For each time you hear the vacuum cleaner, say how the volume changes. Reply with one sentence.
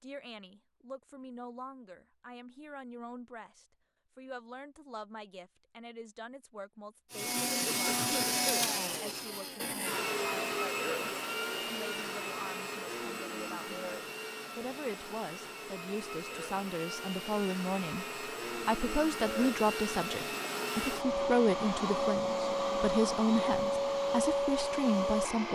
You can hear the vacuum cleaner from 7.1 to 25.4 s, getting quieter then louder.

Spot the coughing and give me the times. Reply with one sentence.
The coughing can be heard from 7.7 to 8.7 s.